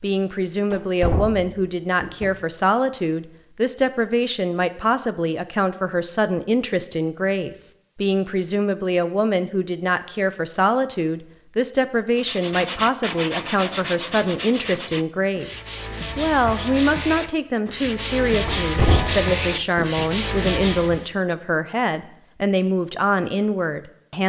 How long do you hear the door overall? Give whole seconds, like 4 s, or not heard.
3 s.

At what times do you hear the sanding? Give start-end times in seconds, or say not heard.
12.2-21.1.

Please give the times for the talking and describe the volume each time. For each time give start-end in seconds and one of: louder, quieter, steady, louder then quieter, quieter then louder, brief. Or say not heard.
0.0-24.2 steady.